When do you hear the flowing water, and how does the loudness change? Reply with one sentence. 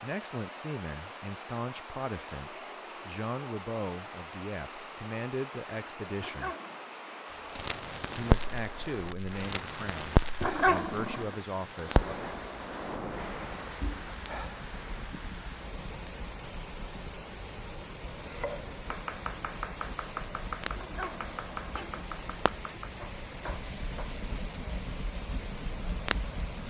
The flowing water can be heard from 0.0 to 26.6 s, at a steady volume.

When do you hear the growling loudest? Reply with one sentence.
The volume of the growling peaks at 11 seconds.